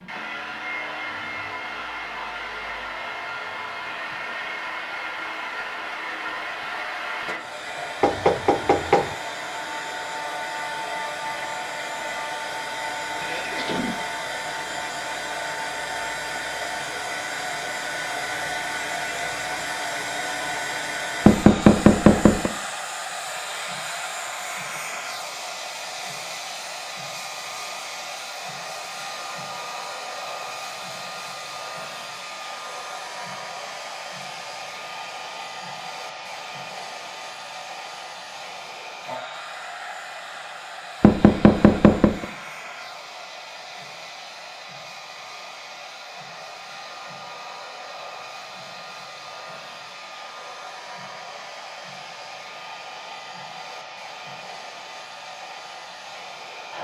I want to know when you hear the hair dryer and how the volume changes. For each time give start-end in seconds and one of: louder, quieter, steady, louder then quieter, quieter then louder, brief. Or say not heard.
0.0-56.7 quieter.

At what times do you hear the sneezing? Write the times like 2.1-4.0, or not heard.
13.2-13.9.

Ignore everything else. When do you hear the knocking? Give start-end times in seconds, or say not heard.
8.0-9.1, 21.2-22.5, 41.0-42.2.